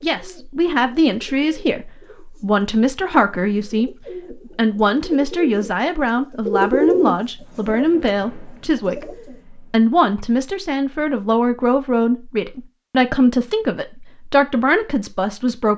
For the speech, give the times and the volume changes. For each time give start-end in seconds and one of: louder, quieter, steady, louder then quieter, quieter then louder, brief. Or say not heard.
0.0-15.7 steady.